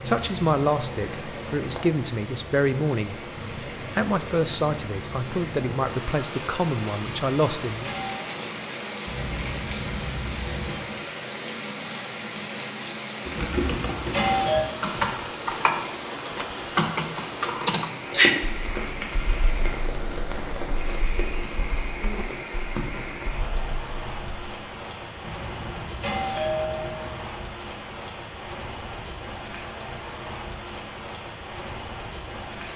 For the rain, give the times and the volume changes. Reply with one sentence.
The rain can be heard from 0.0 to 32.7 s, at a steady volume.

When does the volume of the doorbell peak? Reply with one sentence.
The loudest moment of the doorbell is at 14 seconds.